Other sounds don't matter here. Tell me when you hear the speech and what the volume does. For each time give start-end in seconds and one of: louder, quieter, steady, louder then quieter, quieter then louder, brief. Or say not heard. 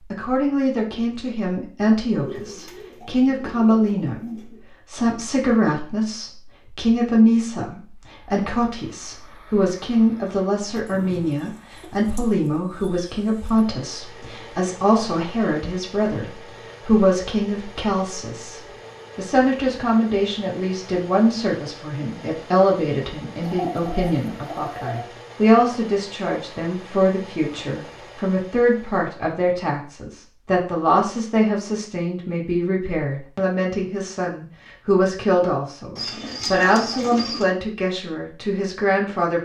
0.0-39.4 steady.